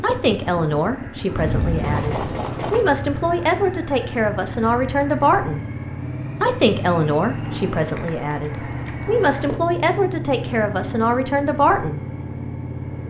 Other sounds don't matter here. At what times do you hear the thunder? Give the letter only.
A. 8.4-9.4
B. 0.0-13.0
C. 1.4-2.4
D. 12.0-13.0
C.